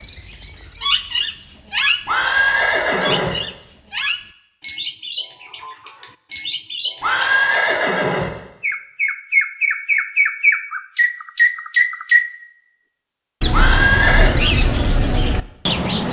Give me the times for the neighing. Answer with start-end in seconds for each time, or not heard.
2.0-3.4, 7.0-8.3, 13.5-14.3.